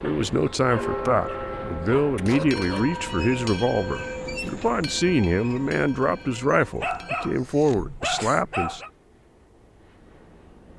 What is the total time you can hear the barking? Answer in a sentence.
The barking can be heard for 5 seconds in total.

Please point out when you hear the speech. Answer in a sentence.
You can hear the speech from 0.0 to 8.8 s.